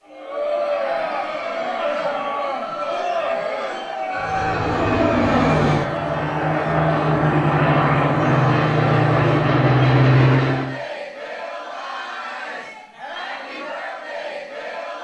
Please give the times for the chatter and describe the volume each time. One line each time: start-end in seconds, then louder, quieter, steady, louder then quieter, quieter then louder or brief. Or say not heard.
0.0-15.0 quieter.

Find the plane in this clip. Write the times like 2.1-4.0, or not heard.
4.2-10.8.